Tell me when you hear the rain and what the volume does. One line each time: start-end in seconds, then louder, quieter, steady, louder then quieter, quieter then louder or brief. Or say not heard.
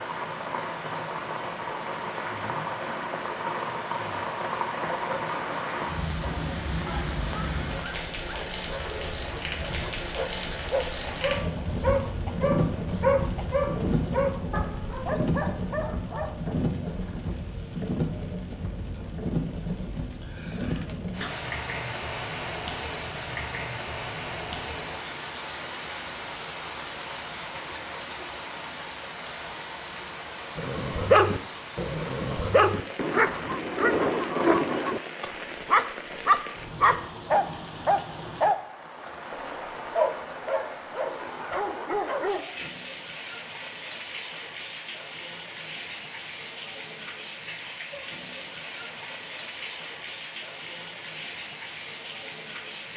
0.0-52.9 quieter.